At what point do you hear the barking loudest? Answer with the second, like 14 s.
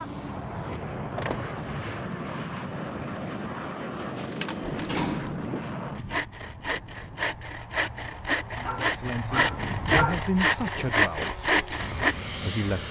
10 s.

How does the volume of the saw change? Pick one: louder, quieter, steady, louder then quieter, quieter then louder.
louder.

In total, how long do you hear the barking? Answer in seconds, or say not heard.
2 s.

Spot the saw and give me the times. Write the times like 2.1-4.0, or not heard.
4.2-12.2.